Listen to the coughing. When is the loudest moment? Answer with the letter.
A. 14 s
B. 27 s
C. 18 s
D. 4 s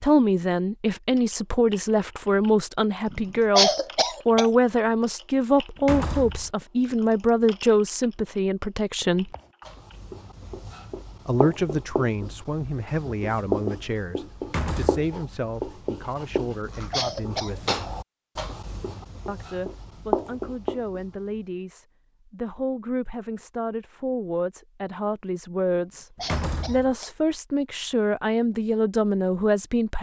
D.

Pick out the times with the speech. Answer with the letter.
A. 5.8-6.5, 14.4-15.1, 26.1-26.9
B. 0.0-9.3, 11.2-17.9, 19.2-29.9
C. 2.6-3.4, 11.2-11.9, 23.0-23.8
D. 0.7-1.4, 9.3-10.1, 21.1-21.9
B.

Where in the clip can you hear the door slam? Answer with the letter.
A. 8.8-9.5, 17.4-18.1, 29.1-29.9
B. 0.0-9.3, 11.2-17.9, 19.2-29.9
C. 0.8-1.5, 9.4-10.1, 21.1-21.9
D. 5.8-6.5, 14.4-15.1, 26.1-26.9
D.